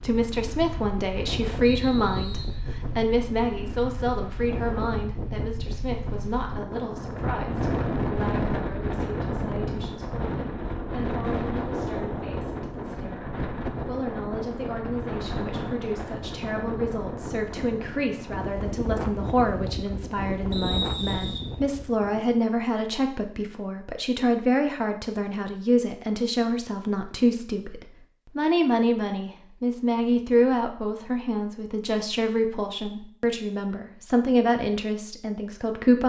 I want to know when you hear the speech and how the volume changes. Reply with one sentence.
The speech can be heard from 0.0 to 36.0 s, getting quieter then louder.